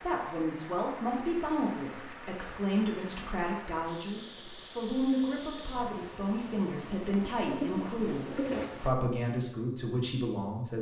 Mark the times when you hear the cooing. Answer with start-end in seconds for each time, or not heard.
7.1-8.7.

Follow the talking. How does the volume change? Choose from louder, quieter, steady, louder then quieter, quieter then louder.
steady.